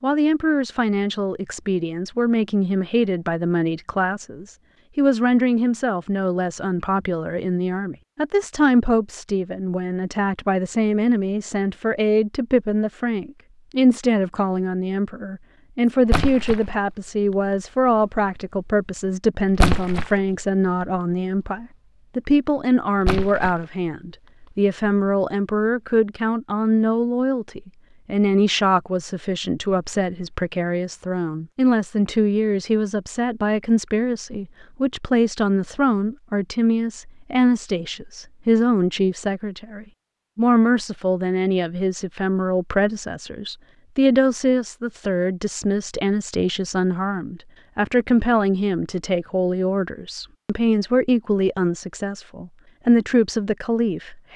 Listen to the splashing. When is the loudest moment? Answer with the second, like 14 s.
20 s.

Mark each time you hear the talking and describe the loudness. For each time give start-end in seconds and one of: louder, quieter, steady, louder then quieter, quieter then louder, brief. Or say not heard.
0.0-54.3 steady.